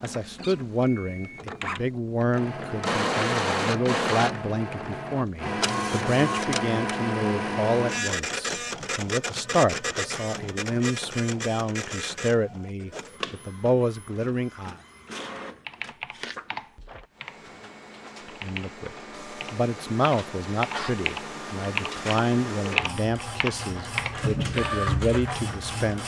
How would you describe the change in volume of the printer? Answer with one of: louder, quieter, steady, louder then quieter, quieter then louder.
quieter then louder.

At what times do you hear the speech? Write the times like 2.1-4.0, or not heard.
0.0-14.8, 18.2-26.0.